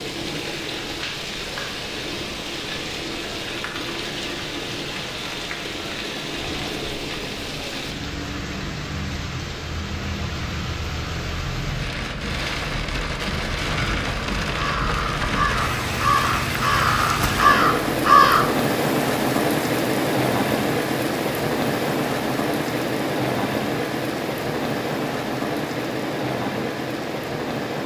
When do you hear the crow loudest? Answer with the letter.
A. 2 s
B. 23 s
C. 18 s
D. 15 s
C.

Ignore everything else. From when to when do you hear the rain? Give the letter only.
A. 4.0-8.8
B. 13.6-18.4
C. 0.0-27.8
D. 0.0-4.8
C.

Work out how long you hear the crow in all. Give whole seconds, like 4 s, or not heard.
5 s.